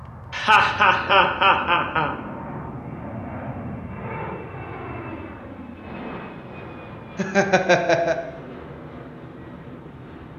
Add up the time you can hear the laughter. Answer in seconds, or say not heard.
3 s.